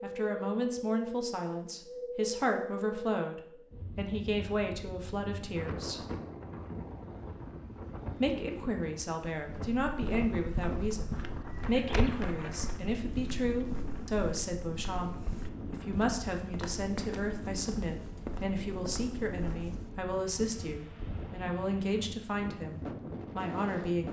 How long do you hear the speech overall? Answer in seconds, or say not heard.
22 s.